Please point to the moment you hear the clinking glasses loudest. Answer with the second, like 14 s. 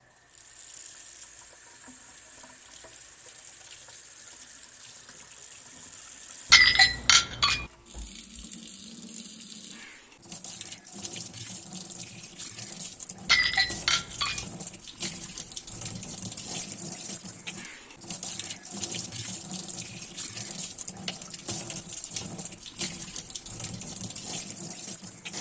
7 s.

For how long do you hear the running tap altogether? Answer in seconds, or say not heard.
25 s.